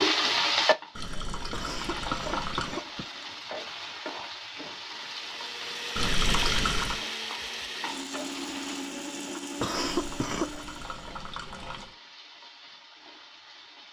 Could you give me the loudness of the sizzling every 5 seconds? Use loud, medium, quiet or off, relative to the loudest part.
loud, medium, quiet.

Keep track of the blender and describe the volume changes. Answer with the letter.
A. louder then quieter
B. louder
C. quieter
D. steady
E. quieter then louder
C.